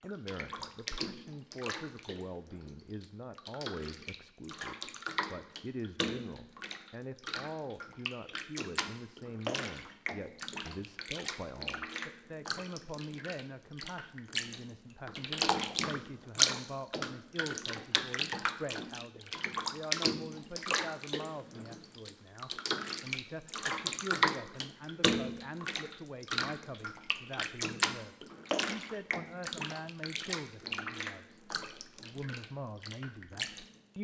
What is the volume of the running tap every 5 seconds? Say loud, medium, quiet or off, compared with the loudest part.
medium, medium, medium, loud, loud, loud, medium.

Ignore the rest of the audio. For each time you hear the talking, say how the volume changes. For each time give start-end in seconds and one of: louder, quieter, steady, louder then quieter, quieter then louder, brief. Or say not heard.
0.0-33.9 steady.